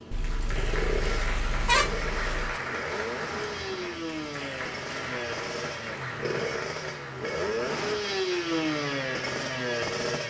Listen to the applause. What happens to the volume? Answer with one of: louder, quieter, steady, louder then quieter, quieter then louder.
quieter.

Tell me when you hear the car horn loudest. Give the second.
2 s.